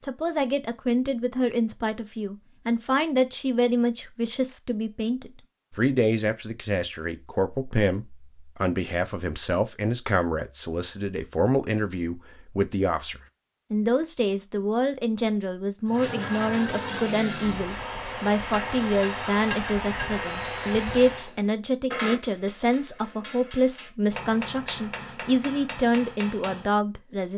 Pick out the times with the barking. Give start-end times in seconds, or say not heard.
not heard.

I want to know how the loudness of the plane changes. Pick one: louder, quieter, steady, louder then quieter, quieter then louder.
steady.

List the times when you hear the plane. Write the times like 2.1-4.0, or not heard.
15.8-21.3.